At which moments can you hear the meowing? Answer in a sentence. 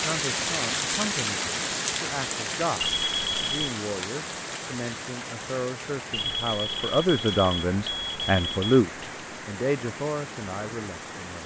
You can't hear the meowing here.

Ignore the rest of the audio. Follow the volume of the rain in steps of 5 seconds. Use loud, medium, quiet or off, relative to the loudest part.
loud, medium, medium.